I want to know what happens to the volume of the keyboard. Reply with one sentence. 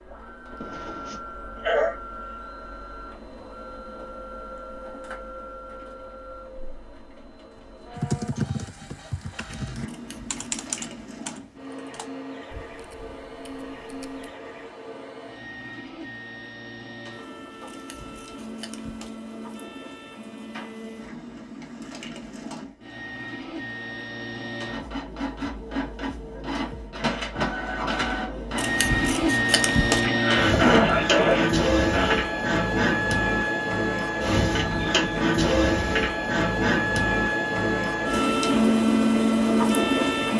The volume of the keyboard goes down.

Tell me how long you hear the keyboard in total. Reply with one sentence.
You can hear the keyboard for 6 seconds altogether.